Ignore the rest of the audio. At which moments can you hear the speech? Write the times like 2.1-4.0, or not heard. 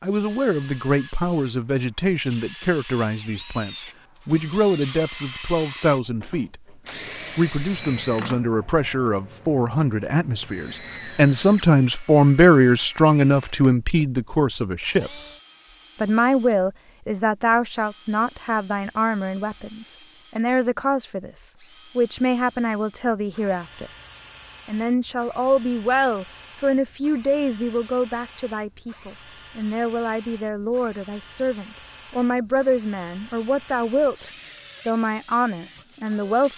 0.0-6.7, 7.3-15.1, 16.0-23.9, 24.6-36.5.